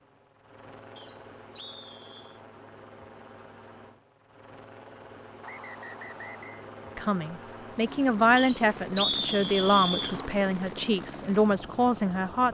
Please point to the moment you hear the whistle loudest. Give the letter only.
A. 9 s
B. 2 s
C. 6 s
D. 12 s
A.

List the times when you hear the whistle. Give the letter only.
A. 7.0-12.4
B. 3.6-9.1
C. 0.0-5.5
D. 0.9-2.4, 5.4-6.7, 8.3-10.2
D.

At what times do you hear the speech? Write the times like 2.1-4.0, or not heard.
7.0-12.4.